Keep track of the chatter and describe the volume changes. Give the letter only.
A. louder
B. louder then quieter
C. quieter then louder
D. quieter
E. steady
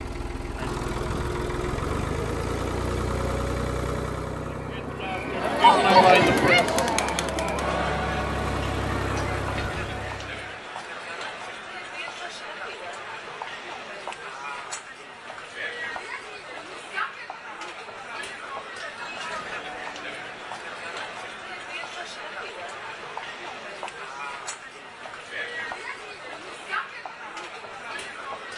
D.